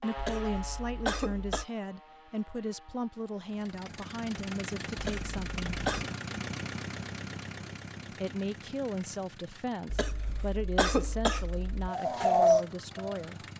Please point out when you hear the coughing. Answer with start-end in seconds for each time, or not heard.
0.1-1.6, 5.0-6.0, 9.8-11.9.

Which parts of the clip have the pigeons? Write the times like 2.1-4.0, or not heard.
11.8-13.5.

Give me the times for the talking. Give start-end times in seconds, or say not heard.
0.0-5.8, 8.2-13.4.